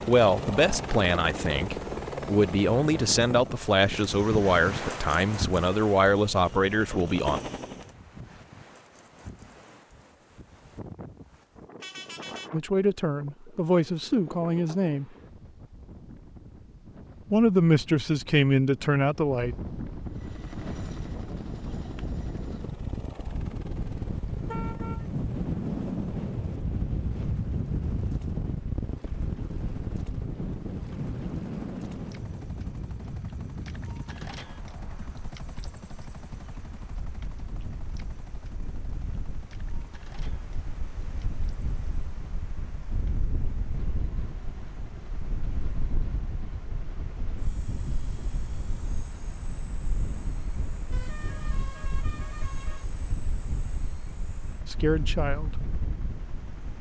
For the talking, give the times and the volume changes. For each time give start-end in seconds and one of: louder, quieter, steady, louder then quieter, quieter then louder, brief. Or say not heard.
0.1-7.4 steady
12.5-15.1 brief
17.3-19.6 brief
54.6-55.6 brief.